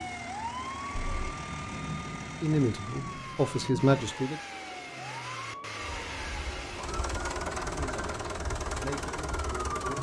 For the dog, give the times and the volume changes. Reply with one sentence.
The dog can't be heard in this clip.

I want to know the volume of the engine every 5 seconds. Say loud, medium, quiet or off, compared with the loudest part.
medium, loud.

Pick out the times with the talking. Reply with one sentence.
You can hear the talking from 2.4 to 4.3 s and from 7.6 to 9.9 s.